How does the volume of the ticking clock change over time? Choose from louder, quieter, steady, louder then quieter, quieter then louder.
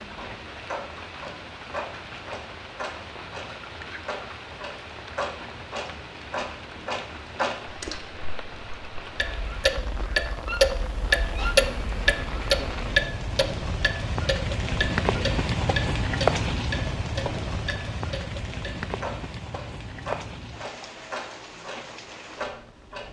louder then quieter.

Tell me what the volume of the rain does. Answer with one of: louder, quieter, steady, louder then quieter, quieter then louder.
louder then quieter.